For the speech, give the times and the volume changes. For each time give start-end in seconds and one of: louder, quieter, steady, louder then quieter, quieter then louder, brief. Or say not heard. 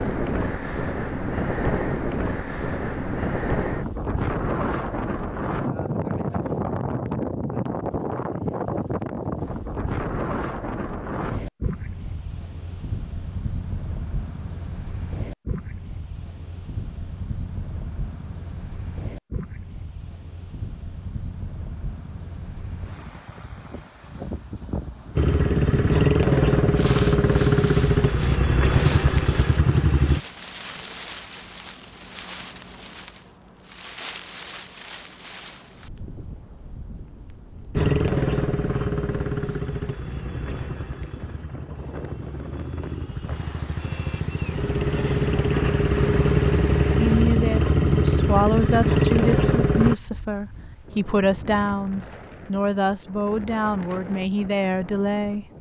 47.0-55.5 steady.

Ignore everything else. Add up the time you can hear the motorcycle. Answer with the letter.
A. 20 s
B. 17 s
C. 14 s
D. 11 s
B.